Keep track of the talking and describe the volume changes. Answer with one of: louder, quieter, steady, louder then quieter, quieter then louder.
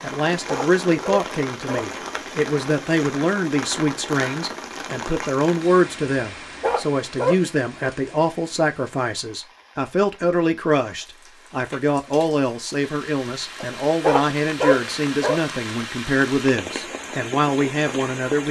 steady.